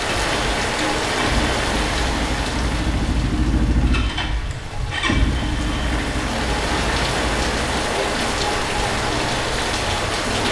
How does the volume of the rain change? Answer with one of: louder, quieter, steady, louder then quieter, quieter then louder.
quieter then louder.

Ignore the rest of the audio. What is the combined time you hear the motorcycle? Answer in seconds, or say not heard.
10 s.